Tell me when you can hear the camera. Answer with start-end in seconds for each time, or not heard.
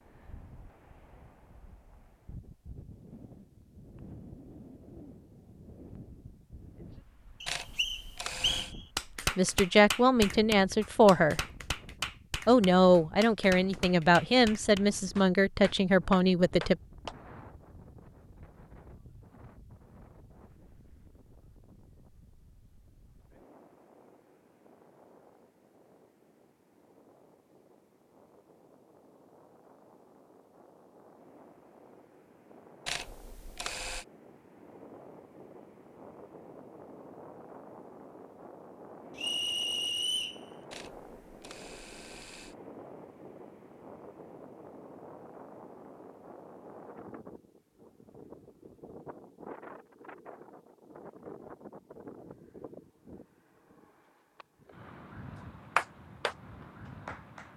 7.5-8.8, 32.9-34.0, 40.7-42.5.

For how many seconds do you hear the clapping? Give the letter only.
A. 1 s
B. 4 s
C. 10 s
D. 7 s
C.